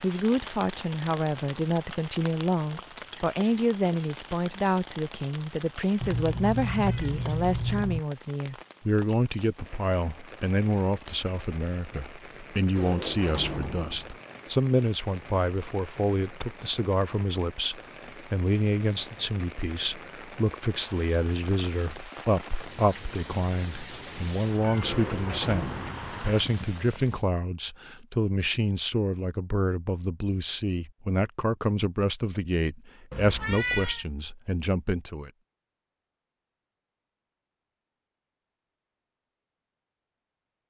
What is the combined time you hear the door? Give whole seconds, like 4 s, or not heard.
3 s.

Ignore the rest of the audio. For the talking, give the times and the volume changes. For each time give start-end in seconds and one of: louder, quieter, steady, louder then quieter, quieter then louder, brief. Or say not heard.
0.0-35.3 steady.